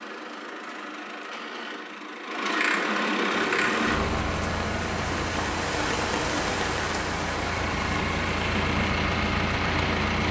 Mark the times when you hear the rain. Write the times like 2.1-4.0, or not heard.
3.3-10.2.